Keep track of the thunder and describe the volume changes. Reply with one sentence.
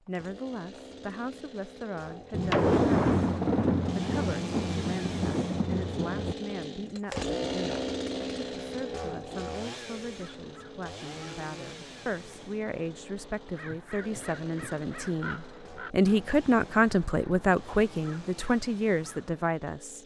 The loudness of the thunder goes down.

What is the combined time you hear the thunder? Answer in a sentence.
The thunder can be heard for 4 seconds in total.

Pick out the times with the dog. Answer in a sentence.
You can't hear the dog here.